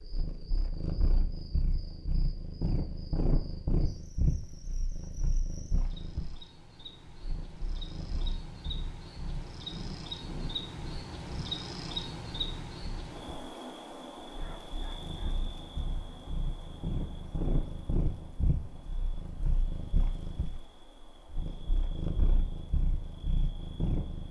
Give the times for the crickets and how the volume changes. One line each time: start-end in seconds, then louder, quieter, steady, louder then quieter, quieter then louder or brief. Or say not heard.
0.0-24.2 louder then quieter.